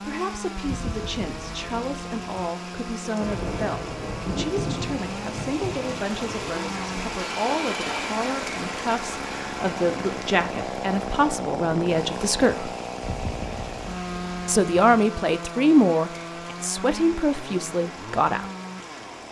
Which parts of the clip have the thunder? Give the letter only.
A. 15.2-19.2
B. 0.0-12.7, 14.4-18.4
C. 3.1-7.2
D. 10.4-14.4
C.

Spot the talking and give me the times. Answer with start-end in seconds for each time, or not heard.
0.0-12.7, 14.4-18.4.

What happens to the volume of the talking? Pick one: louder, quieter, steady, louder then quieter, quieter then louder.
louder.